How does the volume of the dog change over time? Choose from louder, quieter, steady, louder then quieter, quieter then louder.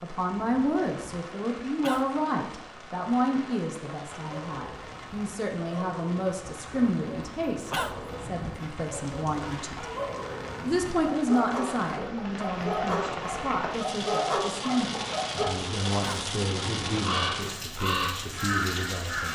louder.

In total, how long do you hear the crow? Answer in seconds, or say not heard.
2 s.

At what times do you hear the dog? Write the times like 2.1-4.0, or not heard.
4.0-15.5.